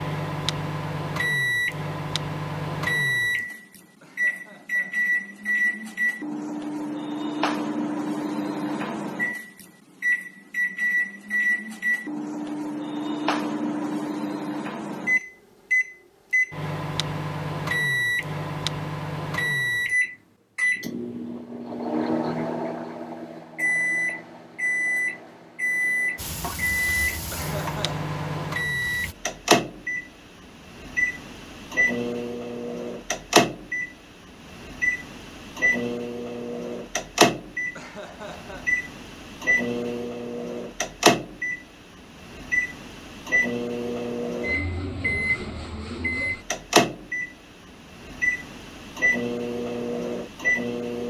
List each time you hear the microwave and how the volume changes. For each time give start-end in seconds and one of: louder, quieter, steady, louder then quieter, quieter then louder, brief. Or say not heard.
0.0-51.0 steady.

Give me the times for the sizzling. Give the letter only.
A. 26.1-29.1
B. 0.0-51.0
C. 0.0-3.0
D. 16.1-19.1
A.